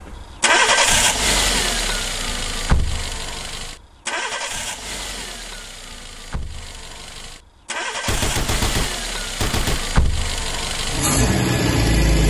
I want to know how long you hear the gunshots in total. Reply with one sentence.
You can hear the gunshots for 2 seconds altogether.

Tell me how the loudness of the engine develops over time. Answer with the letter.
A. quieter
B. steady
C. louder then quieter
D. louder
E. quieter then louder
E.